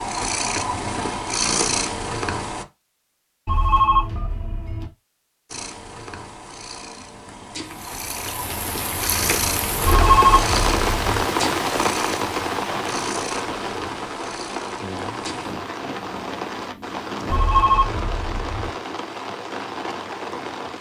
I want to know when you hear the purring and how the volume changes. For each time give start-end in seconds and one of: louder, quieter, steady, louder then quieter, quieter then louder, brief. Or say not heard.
0.0-2.6 brief
5.5-17.4 louder then quieter.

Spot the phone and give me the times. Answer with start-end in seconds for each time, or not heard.
3.5-4.9, 9.8-11.2, 17.2-18.7.